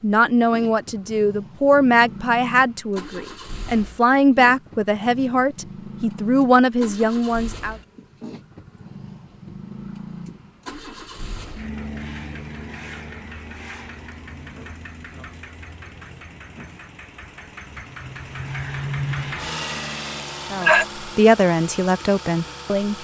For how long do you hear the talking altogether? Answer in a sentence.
The talking can be heard for 10 seconds in total.